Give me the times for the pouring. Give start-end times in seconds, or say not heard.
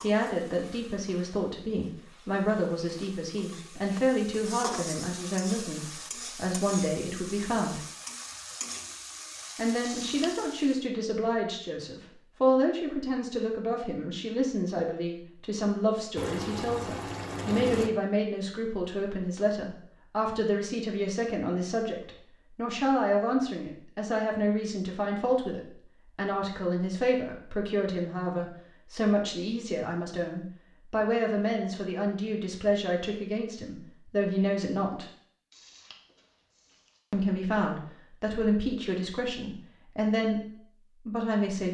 9.8-10.6, 16.1-17.9, 35.5-37.0.